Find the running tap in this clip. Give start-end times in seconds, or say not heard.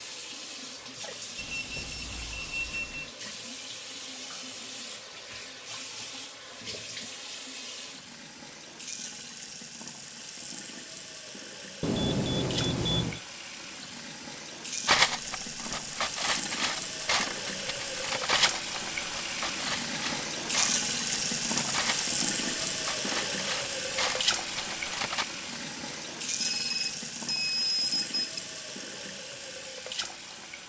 0.0-30.6.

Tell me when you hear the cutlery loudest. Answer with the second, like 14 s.
15 s.